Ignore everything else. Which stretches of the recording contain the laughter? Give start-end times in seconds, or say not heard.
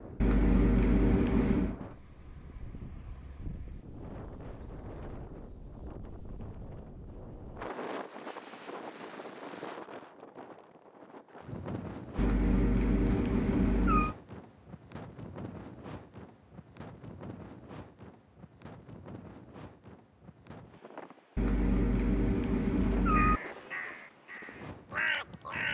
not heard.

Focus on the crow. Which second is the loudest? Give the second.
25 s.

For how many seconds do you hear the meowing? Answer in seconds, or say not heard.
6 s.